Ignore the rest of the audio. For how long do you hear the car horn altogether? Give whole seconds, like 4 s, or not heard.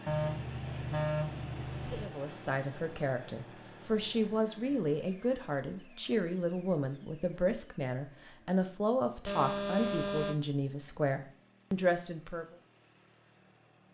3 s.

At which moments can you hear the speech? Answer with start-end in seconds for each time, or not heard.
1.9-12.6.